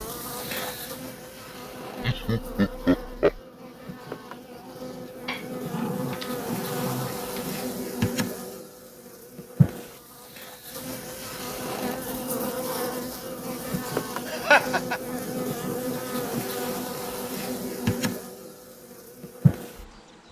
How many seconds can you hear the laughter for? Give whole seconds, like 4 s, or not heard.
2 s.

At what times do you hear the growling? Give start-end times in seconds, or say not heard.
5.2-7.7.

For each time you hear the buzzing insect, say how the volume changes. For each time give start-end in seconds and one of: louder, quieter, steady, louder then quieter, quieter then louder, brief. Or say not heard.
0.0-20.2 louder.